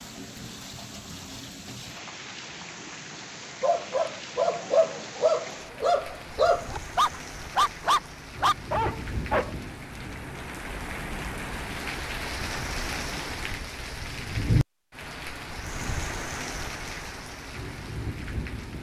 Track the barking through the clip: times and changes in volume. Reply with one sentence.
You can hear the barking from 3.6 to 9.6 s, at a steady volume.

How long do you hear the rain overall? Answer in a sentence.
The rain can be heard for 19 seconds in total.